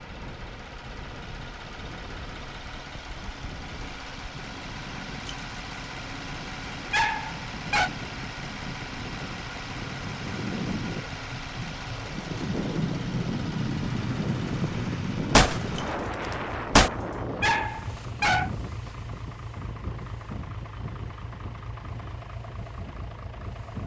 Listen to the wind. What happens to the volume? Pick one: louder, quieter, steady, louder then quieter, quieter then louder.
louder then quieter.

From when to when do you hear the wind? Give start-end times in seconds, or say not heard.
0.0-23.8.